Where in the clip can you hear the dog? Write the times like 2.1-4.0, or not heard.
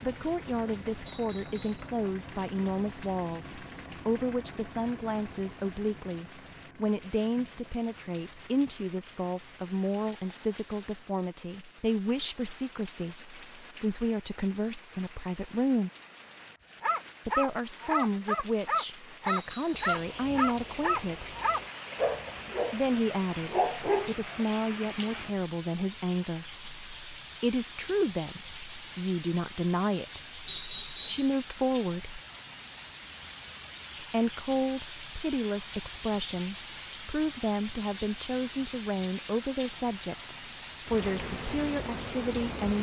16.8-24.4.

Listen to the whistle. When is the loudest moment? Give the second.
31 s.